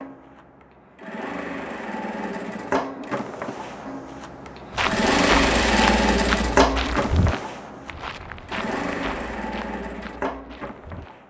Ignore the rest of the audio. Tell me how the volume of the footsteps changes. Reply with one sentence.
The loudness of the footsteps goes down.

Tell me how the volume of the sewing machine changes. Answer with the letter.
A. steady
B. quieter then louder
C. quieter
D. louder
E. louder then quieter
E.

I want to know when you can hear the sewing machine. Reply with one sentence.
You can hear the sewing machine from 0.0 to 11.2 s.